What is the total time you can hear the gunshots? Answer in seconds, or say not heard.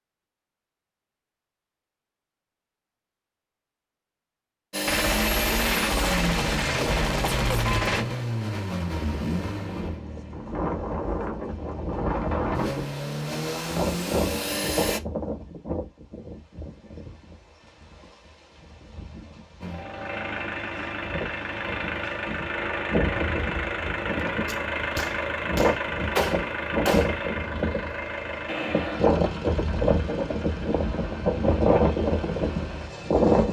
6 s.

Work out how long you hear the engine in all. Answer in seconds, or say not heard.
24 s.